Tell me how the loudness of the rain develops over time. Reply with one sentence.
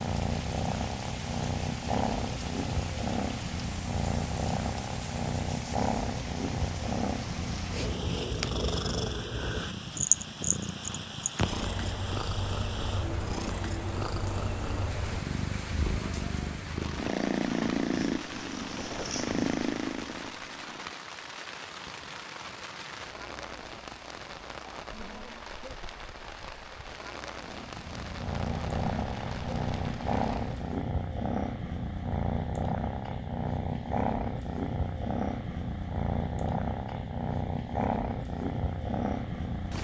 The volume of the rain stays about the same.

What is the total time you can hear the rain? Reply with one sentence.
You can hear the rain for 31 seconds altogether.